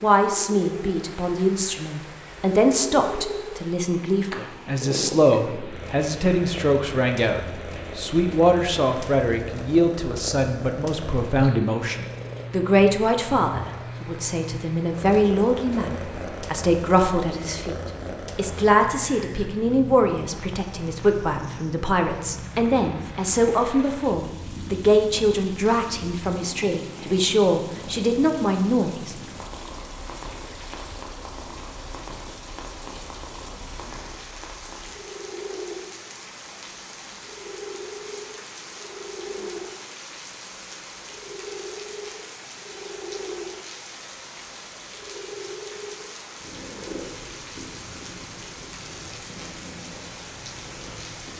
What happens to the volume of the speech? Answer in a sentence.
The volume of the speech stays about the same.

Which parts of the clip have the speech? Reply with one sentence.
You can hear the speech from 0.0 to 29.1 s.